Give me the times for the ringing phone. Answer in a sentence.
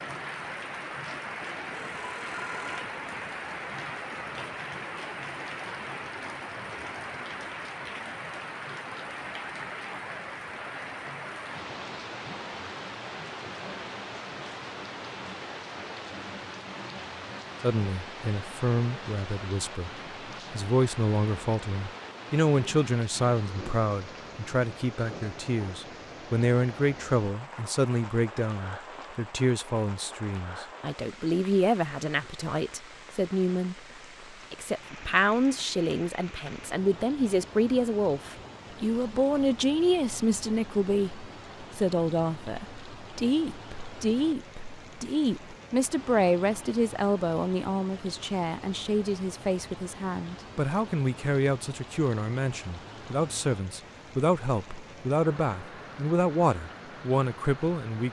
The ringing phone can be heard from 1.7 to 2.9 s.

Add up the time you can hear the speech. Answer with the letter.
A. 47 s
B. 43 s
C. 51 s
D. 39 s
D.